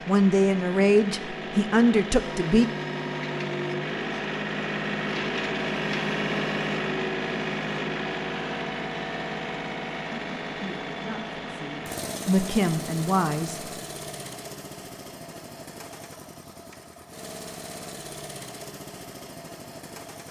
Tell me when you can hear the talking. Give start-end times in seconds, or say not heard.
0.1-2.6, 10.6-13.7.